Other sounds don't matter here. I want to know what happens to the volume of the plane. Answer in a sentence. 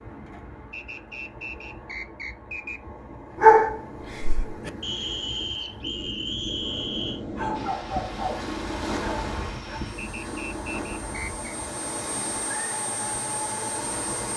The loudness of the plane goes up.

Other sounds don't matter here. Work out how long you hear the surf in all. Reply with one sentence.
The surf can be heard for 14 seconds in total.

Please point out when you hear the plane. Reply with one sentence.
You can hear the plane from 7.5 to 14.3 s.